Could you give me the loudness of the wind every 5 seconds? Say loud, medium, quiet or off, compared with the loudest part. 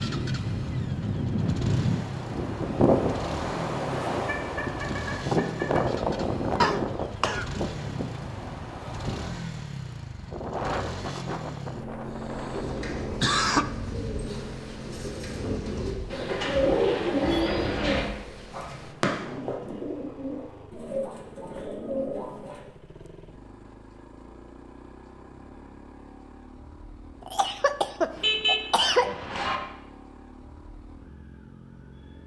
loud, loud, medium, quiet, off, off, off.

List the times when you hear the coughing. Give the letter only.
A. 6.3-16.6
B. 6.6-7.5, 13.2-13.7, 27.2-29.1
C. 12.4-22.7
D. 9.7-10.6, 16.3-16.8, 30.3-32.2
B.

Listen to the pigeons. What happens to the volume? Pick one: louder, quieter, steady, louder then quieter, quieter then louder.
louder then quieter.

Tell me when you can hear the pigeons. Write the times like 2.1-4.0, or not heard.
12.4-22.7.